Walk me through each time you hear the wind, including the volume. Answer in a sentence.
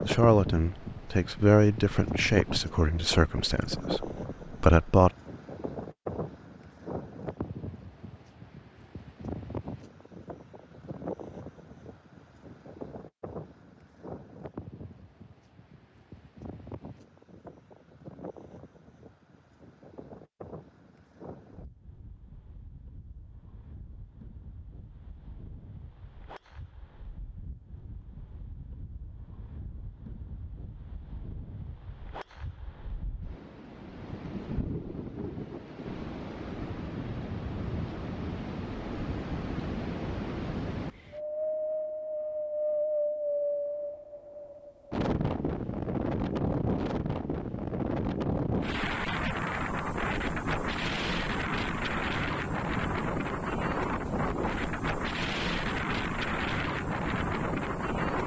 The wind can be heard from 0.0 to 58.2 s, getting quieter then louder.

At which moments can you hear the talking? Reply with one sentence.
You can hear the talking from 0.1 to 5.1 s.